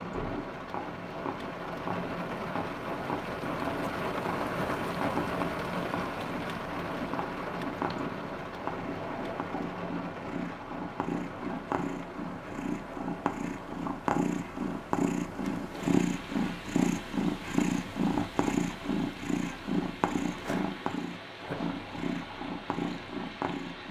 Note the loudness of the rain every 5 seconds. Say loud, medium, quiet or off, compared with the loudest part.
loud, loud, medium, medium, medium.